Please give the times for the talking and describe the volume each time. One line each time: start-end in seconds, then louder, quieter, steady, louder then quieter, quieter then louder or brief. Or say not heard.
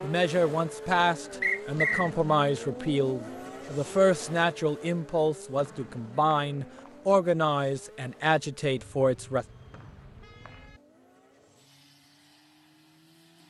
0.0-9.4 steady.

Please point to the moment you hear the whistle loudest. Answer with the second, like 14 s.
2 s.